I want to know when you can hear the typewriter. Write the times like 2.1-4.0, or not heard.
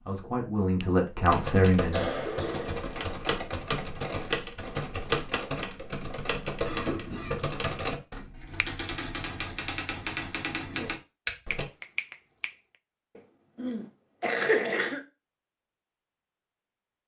1.2-11.7.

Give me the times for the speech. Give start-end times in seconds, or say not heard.
0.1-2.0.